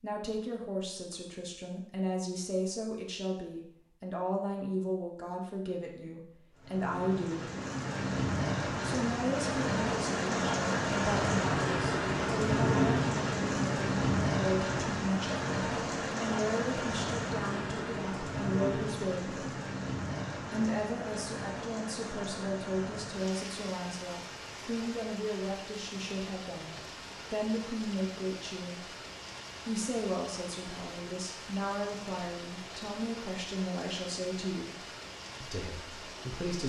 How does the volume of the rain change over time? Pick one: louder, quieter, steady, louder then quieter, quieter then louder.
quieter.